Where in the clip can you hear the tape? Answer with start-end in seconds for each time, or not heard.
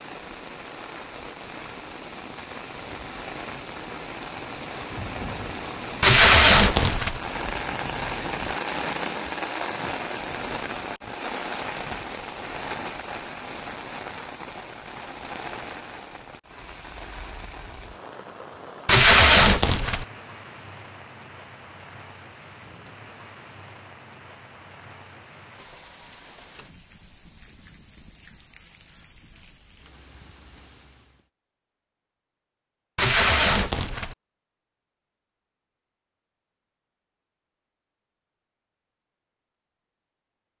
6.0-7.2, 18.9-20.1, 33.0-34.1.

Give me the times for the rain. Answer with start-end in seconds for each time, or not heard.
0.0-31.3.